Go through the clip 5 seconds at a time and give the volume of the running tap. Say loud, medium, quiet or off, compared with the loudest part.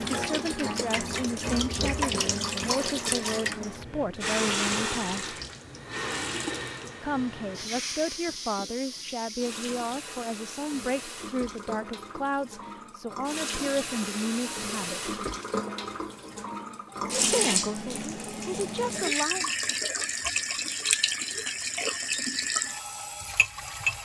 loud, medium, medium, loud, loud.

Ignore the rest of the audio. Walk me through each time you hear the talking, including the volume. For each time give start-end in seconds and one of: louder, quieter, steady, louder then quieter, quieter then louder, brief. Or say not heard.
0.1-5.3 steady
7.0-15.2 steady
17.1-19.5 brief.